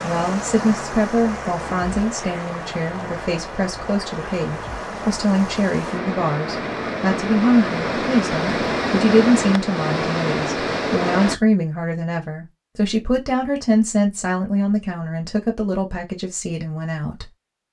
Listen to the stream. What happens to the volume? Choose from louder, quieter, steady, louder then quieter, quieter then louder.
louder.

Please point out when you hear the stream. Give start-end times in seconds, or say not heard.
0.0-11.3.